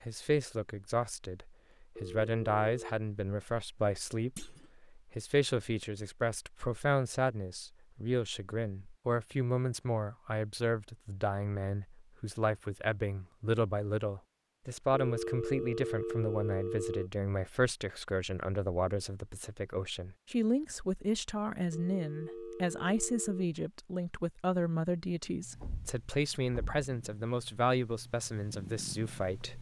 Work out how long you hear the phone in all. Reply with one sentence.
The phone can be heard for 5 seconds in total.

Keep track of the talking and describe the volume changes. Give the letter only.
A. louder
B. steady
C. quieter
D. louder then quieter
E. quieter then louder
B.